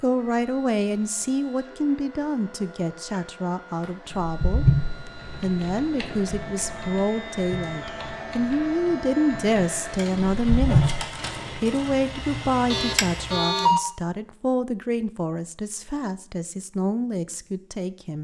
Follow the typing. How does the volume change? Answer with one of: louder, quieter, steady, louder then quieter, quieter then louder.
quieter then louder.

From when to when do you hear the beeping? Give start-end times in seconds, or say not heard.
12.7-13.8.